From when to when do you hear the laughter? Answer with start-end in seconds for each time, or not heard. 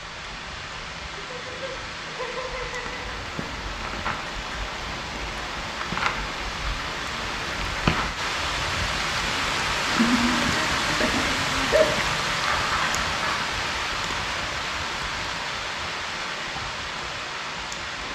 1.3-3.0, 9.8-12.1.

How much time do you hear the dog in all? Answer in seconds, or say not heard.
not heard.